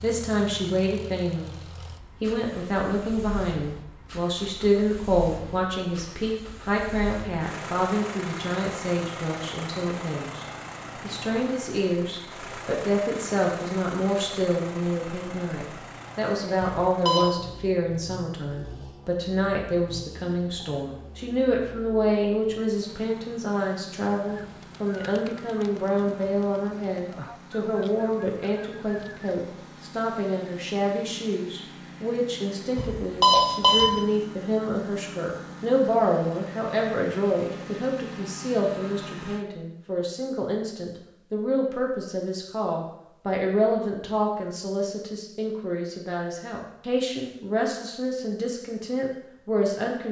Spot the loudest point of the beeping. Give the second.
33 s.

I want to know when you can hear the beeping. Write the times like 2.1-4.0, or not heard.
16.6-17.2, 32.8-33.9.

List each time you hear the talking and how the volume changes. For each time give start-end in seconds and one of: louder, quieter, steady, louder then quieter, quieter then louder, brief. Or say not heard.
0.0-1.6 brief
2.2-50.0 steady.